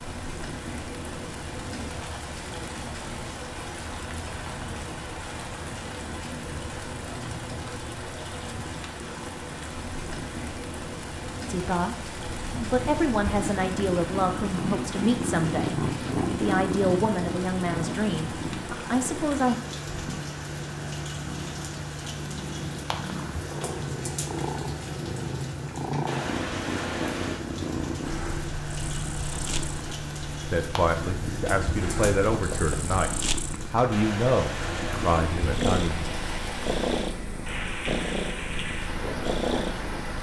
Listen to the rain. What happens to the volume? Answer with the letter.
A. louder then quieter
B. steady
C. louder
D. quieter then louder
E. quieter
B.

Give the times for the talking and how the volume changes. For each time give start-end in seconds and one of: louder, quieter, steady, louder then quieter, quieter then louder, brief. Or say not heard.
11.4-19.6 steady
30.5-33.1 brief
33.7-36.1 brief.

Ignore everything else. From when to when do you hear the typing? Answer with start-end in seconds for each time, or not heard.
not heard.